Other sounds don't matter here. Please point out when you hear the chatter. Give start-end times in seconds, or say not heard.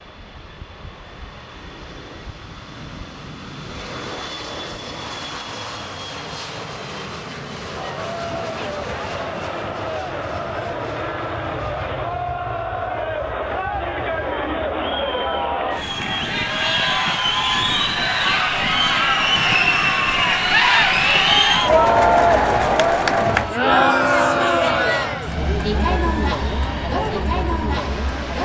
7.8-28.4.